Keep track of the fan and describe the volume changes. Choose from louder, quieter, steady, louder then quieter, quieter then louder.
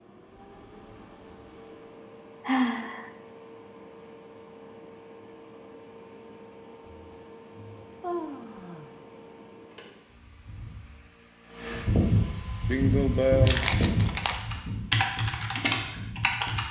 louder.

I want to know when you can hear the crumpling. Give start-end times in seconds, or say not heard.
13.4-14.4.